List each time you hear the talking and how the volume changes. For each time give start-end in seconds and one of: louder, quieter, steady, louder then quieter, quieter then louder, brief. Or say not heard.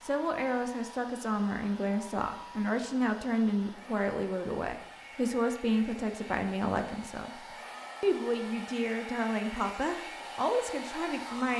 0.0-11.5 steady.